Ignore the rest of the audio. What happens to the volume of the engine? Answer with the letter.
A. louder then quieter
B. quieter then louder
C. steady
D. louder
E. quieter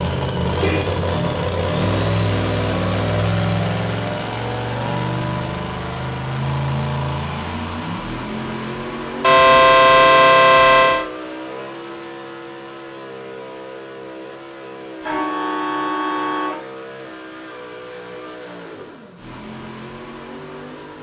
E.